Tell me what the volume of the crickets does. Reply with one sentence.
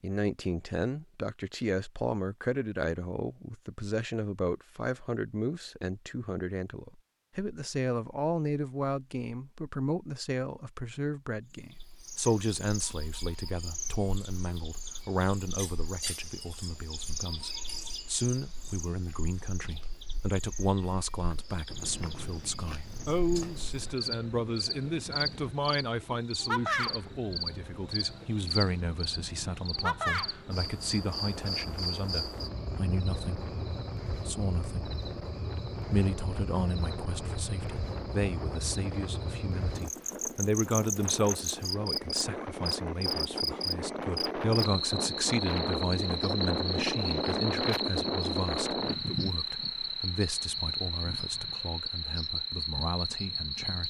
The volume of the crickets goes up.